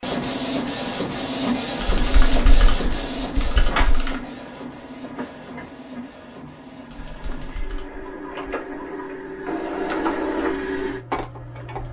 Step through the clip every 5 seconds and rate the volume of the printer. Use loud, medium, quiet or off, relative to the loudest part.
loud, medium, loud.